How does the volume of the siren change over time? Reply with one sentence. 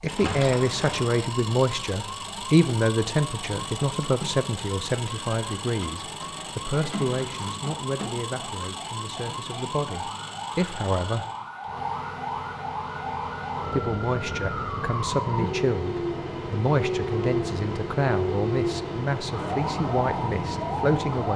The volume of the siren goes up.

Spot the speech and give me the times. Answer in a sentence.
The speech can be heard from 0.0 to 11.2 s and from 13.7 to 21.3 s.